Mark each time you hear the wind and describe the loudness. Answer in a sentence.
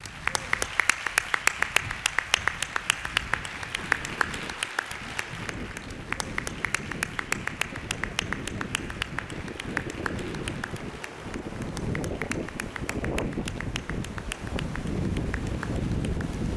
You can hear the wind from 0.0 to 16.5 s, getting louder.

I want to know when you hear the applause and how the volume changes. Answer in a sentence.
The applause can be heard from 0.0 to 16.4 s, getting quieter.